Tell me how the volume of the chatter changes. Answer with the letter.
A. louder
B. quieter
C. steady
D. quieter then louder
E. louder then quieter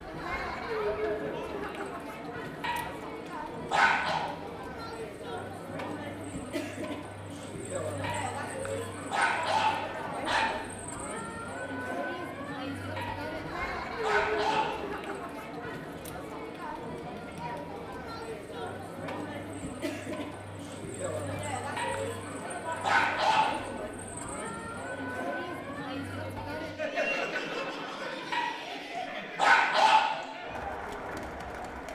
C.